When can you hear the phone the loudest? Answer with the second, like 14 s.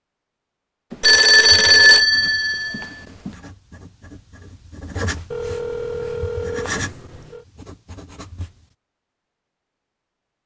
2 s.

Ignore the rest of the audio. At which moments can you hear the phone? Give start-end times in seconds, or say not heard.
0.9-3.3, 5.3-7.5.